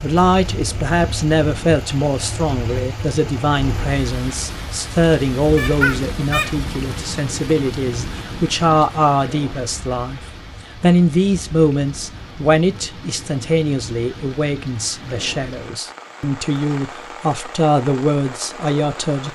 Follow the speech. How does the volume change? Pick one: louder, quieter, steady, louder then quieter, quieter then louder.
steady.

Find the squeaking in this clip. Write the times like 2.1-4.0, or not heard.
5.5-6.5.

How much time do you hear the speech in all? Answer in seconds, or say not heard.
19 s.